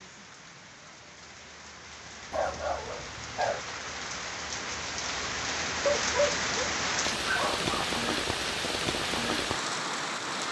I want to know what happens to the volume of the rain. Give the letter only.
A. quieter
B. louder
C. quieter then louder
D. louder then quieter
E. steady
B.